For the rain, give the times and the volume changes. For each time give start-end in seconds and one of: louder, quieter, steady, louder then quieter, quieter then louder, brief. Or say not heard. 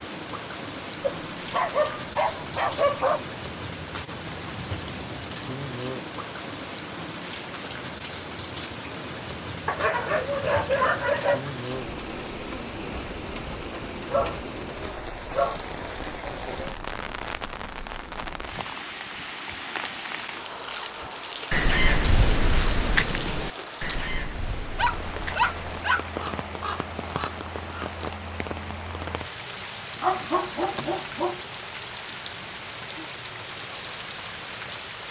0.0-35.0 steady.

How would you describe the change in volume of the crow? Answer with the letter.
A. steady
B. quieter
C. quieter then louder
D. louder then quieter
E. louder
B.